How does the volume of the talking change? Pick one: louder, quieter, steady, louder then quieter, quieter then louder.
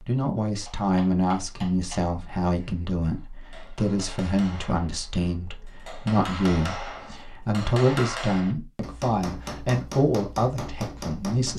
steady.